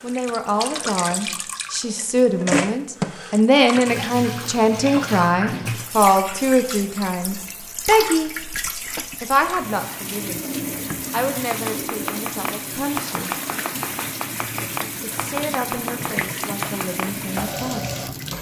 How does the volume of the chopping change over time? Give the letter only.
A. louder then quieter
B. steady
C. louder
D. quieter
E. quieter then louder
B.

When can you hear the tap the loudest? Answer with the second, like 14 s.
3 s.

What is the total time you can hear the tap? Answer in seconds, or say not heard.
18 s.